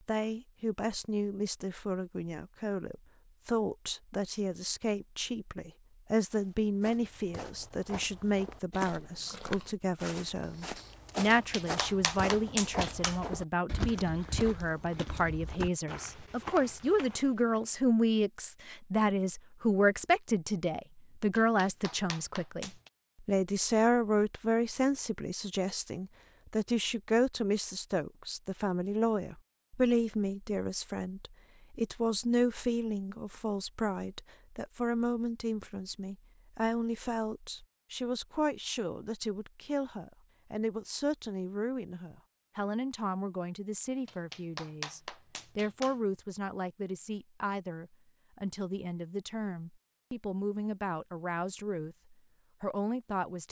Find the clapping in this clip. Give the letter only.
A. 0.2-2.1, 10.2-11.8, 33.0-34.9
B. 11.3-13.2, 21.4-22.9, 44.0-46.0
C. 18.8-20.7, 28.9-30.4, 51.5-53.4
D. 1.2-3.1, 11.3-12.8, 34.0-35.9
B.